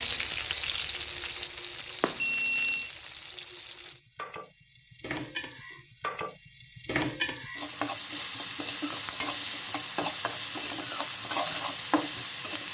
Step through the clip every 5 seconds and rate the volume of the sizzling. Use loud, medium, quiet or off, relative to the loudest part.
medium, loud, loud.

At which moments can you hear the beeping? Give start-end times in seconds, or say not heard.
2.0-2.9.